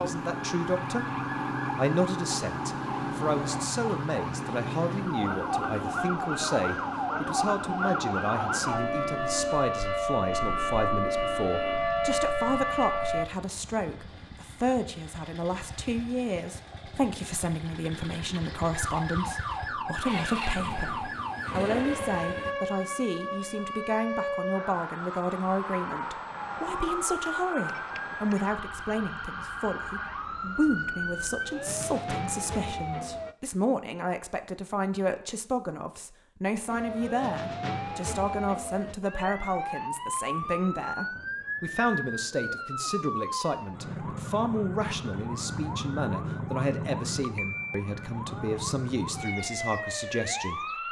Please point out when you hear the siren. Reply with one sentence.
The siren can be heard from 0.0 to 13.2 s, from 18.7 to 33.4 s and from 36.6 to 50.8 s.